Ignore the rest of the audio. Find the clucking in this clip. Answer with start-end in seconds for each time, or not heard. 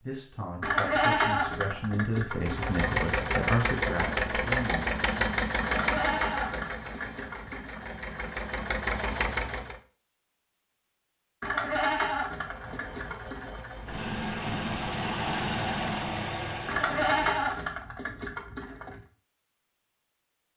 not heard.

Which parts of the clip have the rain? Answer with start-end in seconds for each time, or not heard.
not heard.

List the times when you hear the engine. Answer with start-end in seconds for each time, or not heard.
2.3-9.8, 12.3-17.7.